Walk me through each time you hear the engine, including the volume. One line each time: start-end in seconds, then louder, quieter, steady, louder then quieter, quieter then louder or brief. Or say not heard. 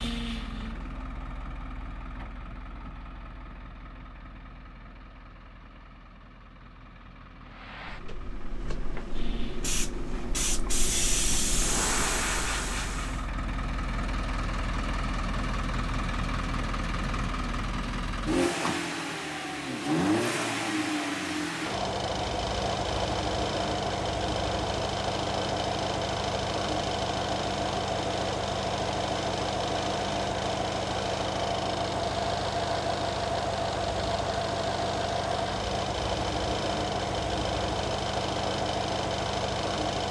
0.0-40.0 louder.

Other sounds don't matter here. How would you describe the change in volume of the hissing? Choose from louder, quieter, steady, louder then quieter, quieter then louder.
louder.